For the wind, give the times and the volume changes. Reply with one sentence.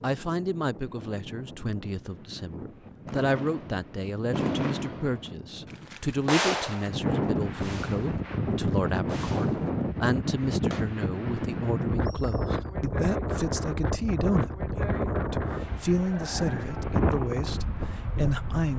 You can hear the wind from 0.0 to 18.7 s, getting louder.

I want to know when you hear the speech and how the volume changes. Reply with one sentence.
The speech can be heard from 0.0 to 18.7 s, at a steady volume.